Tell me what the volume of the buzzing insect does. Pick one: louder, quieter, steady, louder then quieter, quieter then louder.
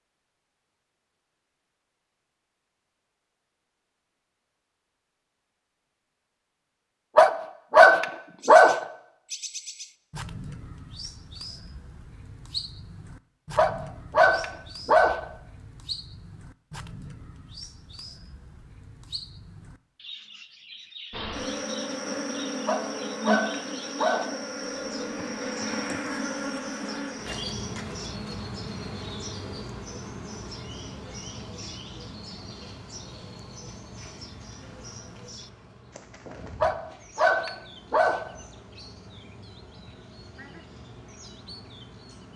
quieter.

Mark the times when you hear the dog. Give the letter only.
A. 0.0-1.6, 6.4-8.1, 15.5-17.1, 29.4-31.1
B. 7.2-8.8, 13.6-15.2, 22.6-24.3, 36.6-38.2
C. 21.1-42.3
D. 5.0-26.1
B.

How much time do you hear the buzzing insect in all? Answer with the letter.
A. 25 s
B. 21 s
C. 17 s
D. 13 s
B.